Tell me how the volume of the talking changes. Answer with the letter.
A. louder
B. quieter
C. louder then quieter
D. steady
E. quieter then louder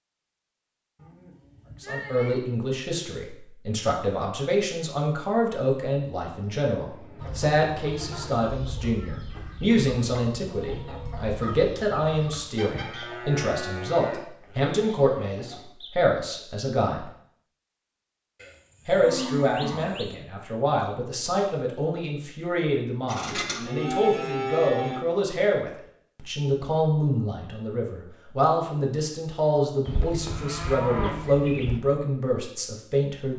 D.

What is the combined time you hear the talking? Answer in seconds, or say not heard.
30 s.